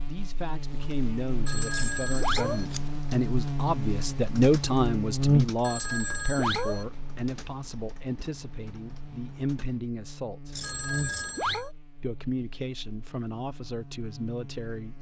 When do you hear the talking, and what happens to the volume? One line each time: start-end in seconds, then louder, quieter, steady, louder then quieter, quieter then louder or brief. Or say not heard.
0.1-10.6 louder then quieter
12.0-14.9 brief.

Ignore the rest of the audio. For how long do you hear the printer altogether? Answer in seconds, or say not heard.
not heard.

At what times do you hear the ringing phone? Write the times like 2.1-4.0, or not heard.
1.4-2.6, 5.6-6.8, 10.6-11.7.